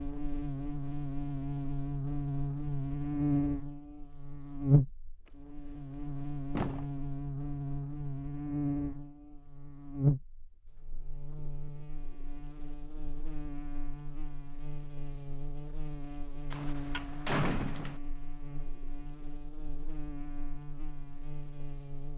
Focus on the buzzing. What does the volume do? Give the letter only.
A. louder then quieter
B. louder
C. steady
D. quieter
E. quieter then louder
D.